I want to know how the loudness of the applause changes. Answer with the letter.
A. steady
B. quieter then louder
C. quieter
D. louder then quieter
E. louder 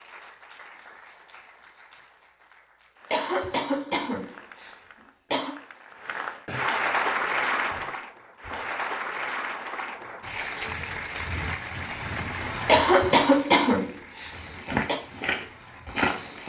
D.